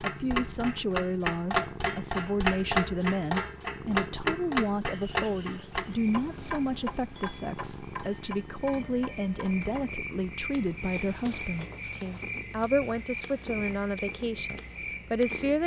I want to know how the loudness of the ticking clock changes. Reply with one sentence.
The loudness of the ticking clock goes down.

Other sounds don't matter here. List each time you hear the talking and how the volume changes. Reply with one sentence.
You can hear the talking from 0.0 to 15.6 s, at a steady volume.